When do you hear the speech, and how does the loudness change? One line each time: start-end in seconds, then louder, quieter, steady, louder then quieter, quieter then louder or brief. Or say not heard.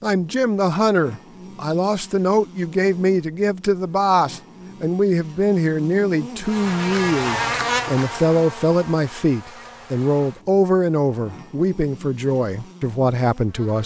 0.0-13.8 steady.